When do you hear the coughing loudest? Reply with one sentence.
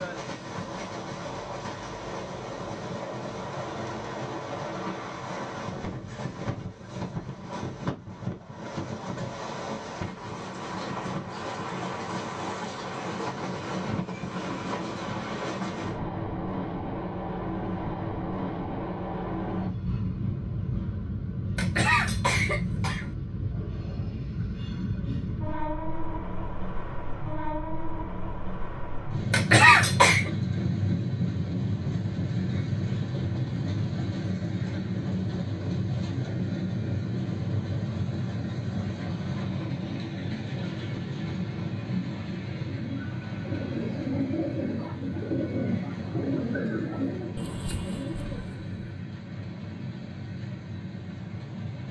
The volume of the coughing peaks at 30 seconds.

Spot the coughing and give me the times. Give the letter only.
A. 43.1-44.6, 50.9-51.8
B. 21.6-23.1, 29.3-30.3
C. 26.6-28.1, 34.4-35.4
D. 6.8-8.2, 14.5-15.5
B.